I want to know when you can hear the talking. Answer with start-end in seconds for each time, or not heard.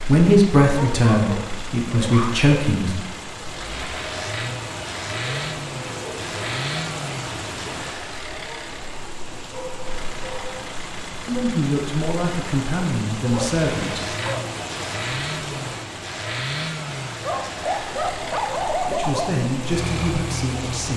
0.0-3.0, 11.1-14.0, 18.9-20.9.